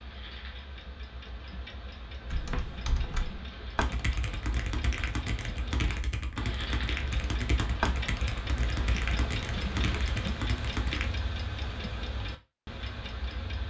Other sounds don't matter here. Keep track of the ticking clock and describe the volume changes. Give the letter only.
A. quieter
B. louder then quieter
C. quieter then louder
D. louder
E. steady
D.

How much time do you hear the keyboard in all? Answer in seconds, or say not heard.
9 s.